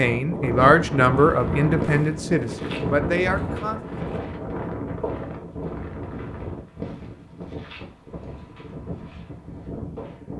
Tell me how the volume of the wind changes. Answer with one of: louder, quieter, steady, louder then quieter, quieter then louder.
quieter.